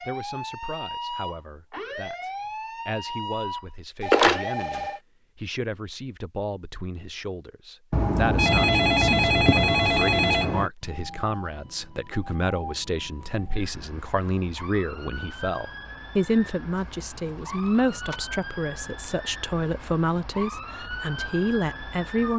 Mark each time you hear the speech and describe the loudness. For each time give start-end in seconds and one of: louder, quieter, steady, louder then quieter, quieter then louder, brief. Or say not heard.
0.0-22.3 louder.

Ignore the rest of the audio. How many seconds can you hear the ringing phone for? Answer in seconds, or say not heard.
5 s.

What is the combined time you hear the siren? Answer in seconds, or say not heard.
16 s.